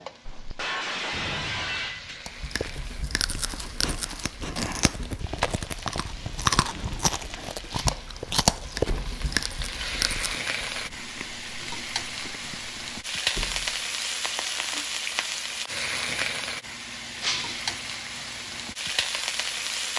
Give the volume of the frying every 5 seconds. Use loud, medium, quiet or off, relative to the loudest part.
quiet, medium, loud, loud.